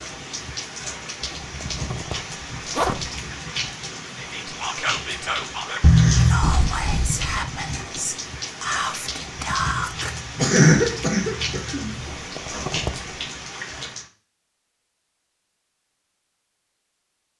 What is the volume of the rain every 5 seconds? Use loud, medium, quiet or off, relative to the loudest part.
loud, loud, loud, off.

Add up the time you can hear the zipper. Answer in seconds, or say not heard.
4 s.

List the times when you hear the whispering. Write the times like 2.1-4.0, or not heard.
4.2-10.8.